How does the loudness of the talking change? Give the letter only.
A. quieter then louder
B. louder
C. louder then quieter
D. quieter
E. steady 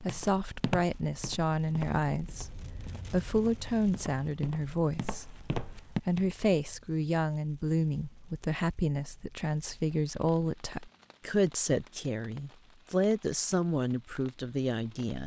E.